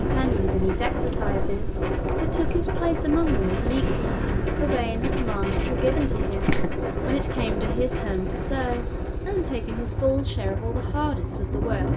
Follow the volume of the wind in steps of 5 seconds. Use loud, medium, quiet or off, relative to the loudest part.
loud, loud, medium.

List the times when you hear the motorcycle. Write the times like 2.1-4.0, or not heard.
0.0-11.9.